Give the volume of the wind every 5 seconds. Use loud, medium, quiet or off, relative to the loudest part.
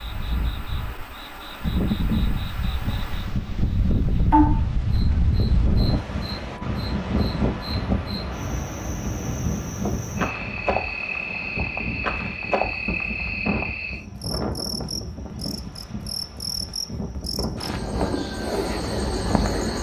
loud, loud, medium, medium.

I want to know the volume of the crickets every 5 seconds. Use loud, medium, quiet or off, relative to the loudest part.
loud, medium, loud, loud.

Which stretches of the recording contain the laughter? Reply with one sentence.
You can't hear the laughter here.